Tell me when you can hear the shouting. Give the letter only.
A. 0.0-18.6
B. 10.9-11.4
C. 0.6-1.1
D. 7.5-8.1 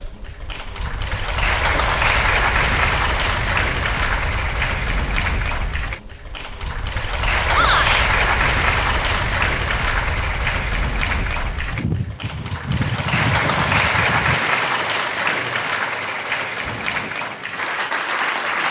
D.